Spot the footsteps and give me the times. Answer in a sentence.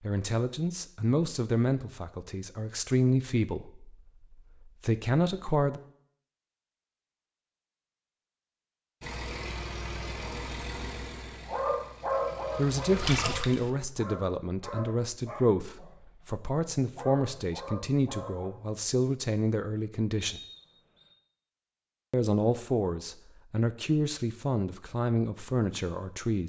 The footsteps can't be heard in this clip.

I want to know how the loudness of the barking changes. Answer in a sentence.
The loudness of the barking goes down, then up.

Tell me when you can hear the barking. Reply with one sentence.
You can hear the barking from 11.4 to 18.5 s.